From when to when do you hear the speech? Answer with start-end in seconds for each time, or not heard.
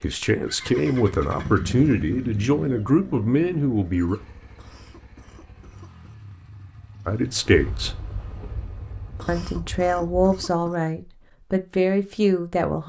0.0-4.2, 7.0-8.0, 9.2-12.8.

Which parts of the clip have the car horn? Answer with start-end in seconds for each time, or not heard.
not heard.